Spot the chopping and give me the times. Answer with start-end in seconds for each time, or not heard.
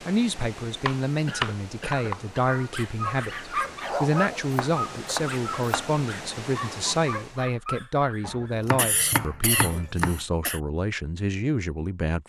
0.8-2.2, 4.5-5.8, 8.2-10.2.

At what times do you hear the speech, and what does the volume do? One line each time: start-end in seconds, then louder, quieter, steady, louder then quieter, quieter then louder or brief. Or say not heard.
0.1-12.2 steady.